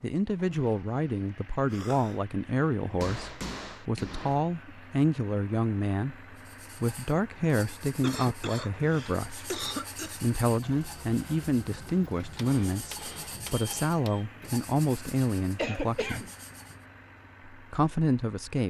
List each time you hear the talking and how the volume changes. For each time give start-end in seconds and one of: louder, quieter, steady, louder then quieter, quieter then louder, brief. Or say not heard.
0.0-16.2 steady
17.5-18.6 brief.